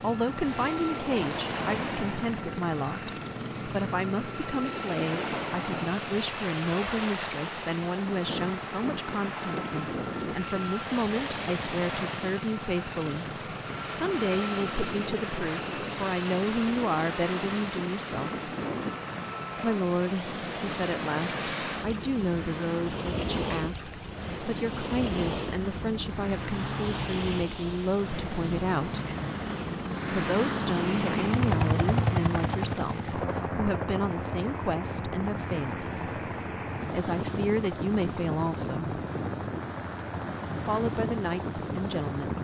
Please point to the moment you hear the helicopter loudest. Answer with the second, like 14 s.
32 s.